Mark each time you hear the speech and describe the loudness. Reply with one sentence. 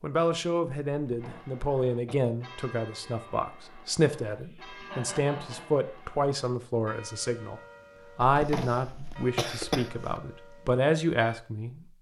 The speech can be heard from 0.0 to 11.8 s, at a steady volume.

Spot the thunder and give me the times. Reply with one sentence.
The thunder can't be heard in this clip.